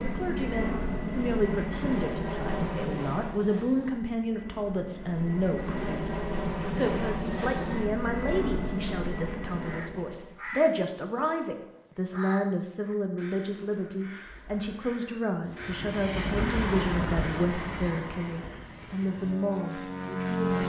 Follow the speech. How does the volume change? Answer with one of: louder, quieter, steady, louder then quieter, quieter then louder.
steady.